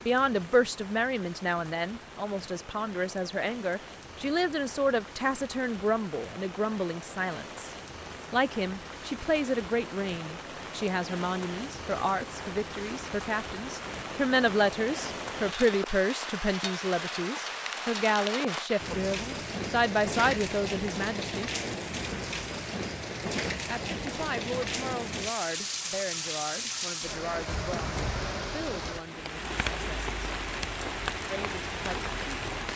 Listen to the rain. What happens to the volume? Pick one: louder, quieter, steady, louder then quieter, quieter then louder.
louder.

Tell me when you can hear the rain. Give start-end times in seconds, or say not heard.
0.0-32.7.